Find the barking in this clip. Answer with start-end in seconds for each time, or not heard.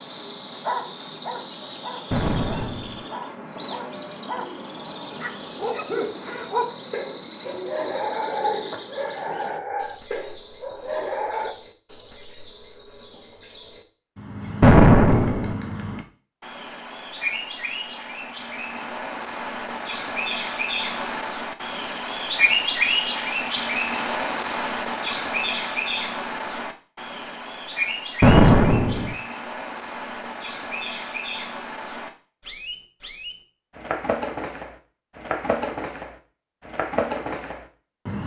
0.6-11.6.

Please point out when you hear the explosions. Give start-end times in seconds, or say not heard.
2.1-3.0, 14.6-15.6, 28.2-29.1.